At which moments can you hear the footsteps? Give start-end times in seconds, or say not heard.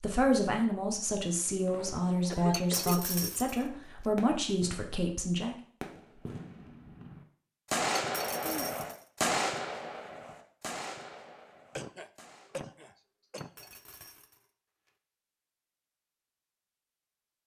not heard.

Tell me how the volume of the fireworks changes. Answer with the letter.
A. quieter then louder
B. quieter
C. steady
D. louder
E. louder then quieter
E.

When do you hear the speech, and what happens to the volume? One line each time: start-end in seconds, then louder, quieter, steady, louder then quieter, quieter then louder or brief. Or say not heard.
0.0-5.5 steady.